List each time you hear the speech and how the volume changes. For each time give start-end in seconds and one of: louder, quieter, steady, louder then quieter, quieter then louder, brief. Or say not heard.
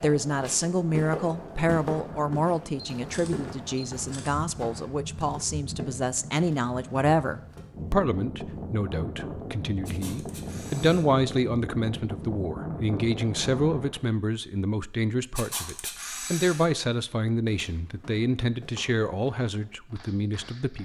0.0-20.8 steady.